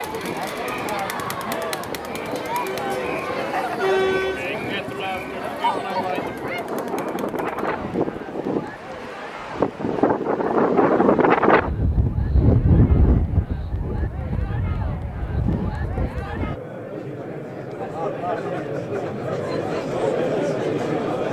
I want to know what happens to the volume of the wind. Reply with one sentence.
The volume of the wind goes up, then down.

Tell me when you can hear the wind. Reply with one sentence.
You can hear the wind from 0.0 to 16.6 s.